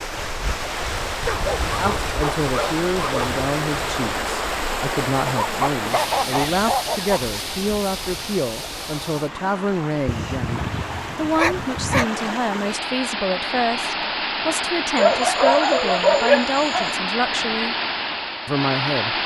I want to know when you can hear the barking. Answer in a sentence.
The barking can be heard from 1.2 to 3.3 s, from 5.2 to 7.2 s, from 10.1 to 12.1 s and from 14.9 to 16.9 s.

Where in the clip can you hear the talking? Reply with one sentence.
The talking can be heard from 1.8 to 17.8 s and from 18.4 to 19.2 s.